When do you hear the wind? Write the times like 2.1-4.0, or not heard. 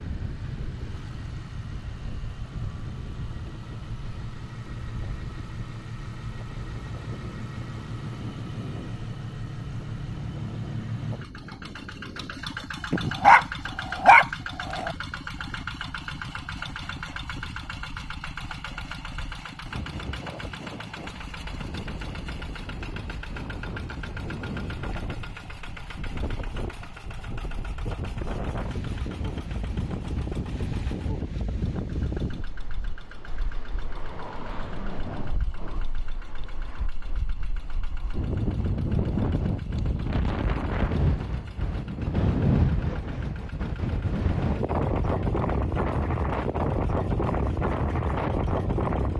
0.0-49.1.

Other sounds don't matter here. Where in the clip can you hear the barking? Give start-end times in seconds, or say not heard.
12.9-14.9.